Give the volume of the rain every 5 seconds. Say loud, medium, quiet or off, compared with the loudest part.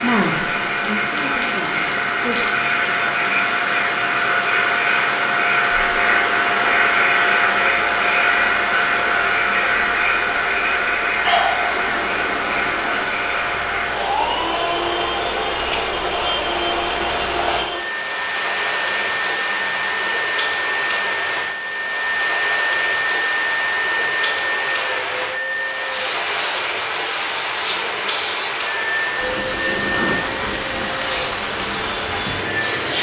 medium, medium, medium, loud, loud, loud, loud.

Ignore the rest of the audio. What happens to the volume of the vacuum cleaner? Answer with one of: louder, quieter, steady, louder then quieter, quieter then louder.
quieter.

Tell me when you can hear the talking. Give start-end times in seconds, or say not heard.
0.0-2.5.